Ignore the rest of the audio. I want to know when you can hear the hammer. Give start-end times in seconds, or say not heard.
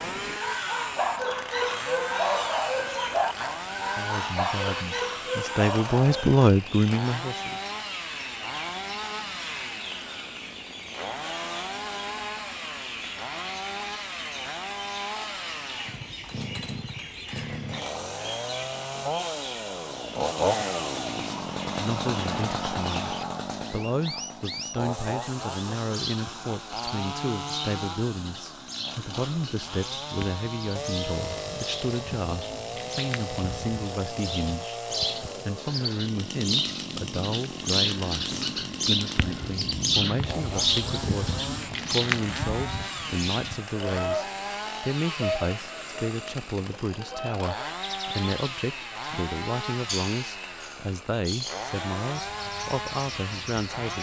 not heard.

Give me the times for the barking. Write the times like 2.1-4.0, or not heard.
0.4-6.5.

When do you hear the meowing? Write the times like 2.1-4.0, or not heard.
not heard.